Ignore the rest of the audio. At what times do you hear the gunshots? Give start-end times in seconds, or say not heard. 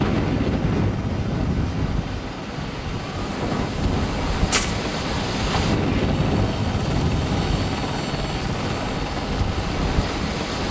3.1-4.8.